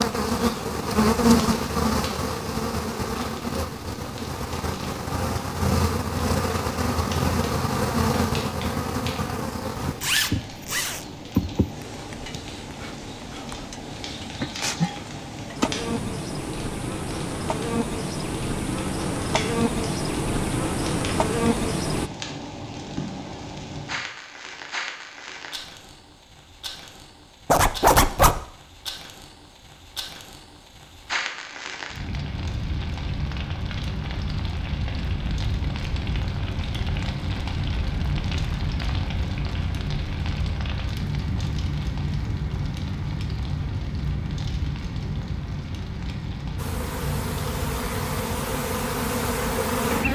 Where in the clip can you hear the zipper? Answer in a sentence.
The zipper can be heard from 9.8 to 11.2 s and from 27.5 to 28.4 s.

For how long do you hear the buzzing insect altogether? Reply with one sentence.
The buzzing insect can be heard for 26 seconds in total.